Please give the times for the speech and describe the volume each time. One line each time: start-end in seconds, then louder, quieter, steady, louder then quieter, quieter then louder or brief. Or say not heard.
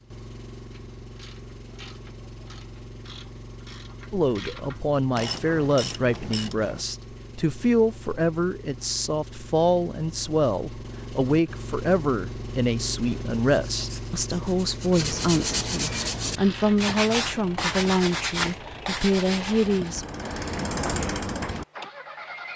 4.1-20.1 steady.